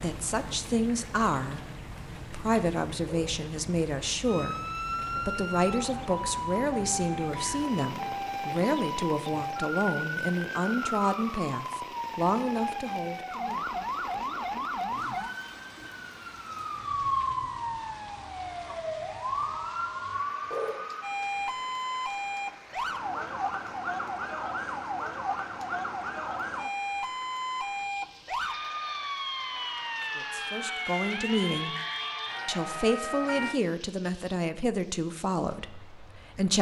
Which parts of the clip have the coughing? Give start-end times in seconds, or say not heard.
not heard.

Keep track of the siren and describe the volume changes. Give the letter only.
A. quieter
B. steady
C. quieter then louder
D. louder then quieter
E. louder
B.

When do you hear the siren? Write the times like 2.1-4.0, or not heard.
4.2-33.6.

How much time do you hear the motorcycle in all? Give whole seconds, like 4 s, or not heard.
not heard.